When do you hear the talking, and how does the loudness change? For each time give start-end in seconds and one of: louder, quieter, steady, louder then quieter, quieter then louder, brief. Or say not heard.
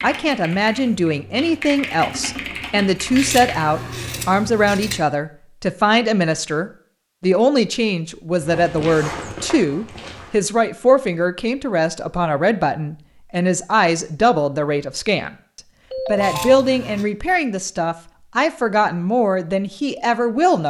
0.0-20.6 steady.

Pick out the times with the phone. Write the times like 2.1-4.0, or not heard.
15.9-16.6.